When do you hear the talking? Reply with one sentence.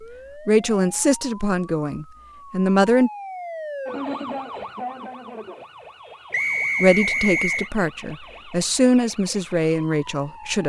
You can hear the talking from 0.5 to 3.1 s and from 6.8 to 10.6 s.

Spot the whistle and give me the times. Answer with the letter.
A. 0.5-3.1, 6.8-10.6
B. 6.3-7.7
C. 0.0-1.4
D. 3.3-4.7
B.